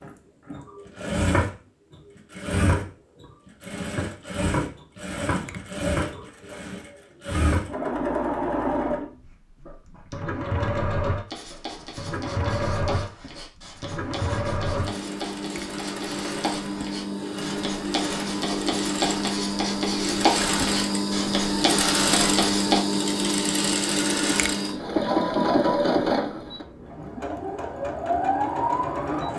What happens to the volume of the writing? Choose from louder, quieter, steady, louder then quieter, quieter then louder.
louder.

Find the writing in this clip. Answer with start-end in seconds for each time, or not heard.
11.2-22.8.